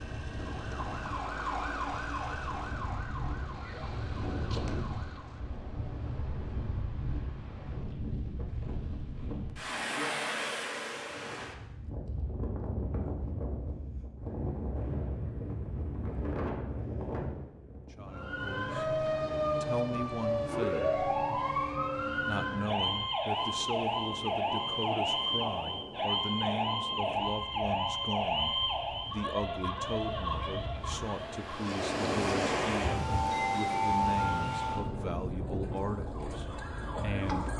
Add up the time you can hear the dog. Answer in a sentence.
You can't hear the dog here.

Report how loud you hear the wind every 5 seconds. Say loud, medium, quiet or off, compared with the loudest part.
medium, medium, medium, medium, quiet, quiet, loud, medium.